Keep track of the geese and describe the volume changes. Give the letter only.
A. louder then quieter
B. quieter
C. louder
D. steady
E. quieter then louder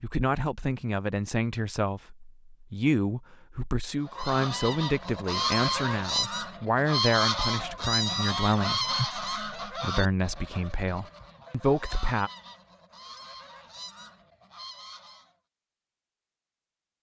B.